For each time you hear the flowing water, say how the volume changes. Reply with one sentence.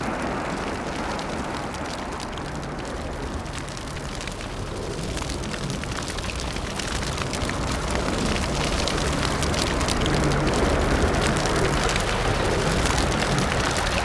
You can hear the flowing water from 0.0 to 14.0 s, getting quieter then louder.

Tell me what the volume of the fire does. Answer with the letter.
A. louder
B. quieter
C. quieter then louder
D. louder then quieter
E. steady
A.